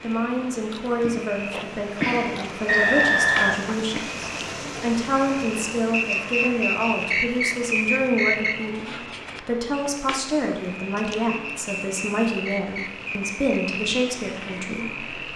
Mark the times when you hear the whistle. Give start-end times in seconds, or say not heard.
2.6-3.6, 5.9-8.7, 11.2-13.3.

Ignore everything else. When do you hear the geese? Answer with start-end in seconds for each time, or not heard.
not heard.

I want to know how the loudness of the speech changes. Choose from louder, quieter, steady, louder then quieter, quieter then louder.
steady.